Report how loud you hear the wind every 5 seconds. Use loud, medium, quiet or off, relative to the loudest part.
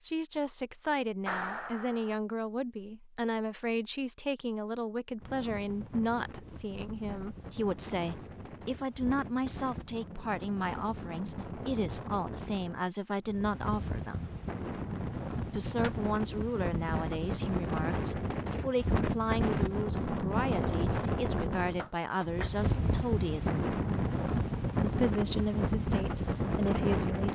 off, quiet, medium, loud, loud, loud.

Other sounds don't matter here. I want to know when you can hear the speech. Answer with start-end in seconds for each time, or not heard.
0.0-14.3, 15.5-23.6, 24.8-27.3.